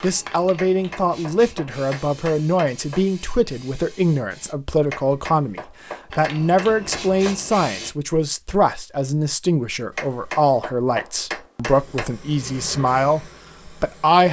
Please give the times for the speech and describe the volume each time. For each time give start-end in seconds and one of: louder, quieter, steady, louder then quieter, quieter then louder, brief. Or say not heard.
0.0-14.2 steady.